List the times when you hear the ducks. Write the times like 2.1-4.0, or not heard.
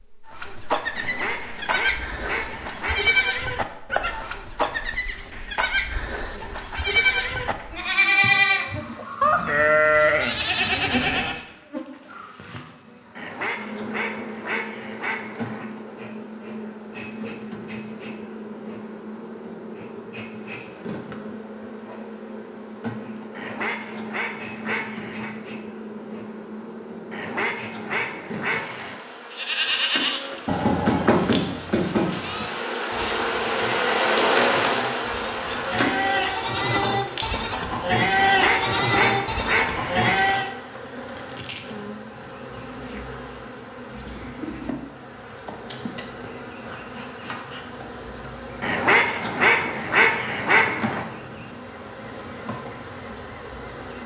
0.9-3.1, 13.2-15.7, 23.4-25.4, 27.1-29.0, 38.1-40.1, 48.6-51.0.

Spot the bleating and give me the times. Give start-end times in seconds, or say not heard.
0.3-11.4, 29.3-40.5.